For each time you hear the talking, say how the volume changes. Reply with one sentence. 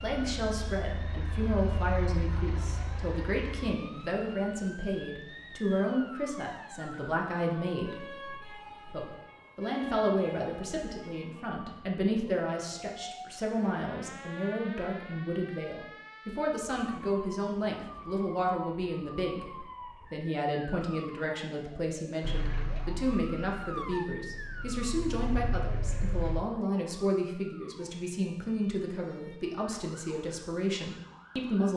You can hear the talking from 0.0 to 31.7 s, at a steady volume.